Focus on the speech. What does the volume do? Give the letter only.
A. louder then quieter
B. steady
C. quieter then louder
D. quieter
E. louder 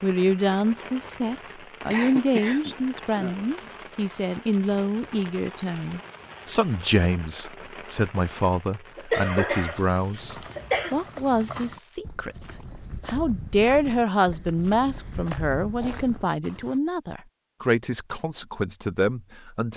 B.